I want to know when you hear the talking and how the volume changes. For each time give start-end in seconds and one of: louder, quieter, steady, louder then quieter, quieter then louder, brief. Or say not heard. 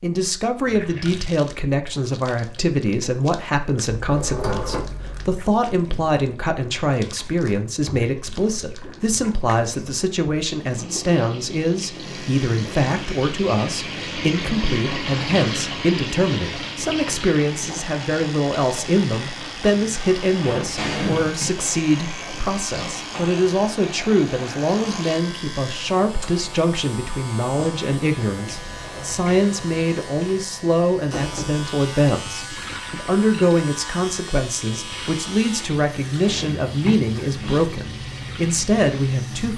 0.0-39.5 steady.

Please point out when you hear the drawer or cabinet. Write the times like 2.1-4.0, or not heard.
4.0-5.4, 20.8-21.4, 36.2-37.6.